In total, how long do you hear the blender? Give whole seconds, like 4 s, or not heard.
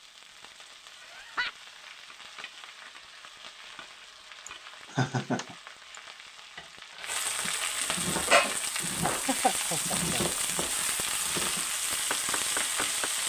not heard.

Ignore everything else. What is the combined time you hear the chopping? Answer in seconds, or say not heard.
6 s.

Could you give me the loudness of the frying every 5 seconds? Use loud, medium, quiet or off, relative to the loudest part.
quiet, loud, loud.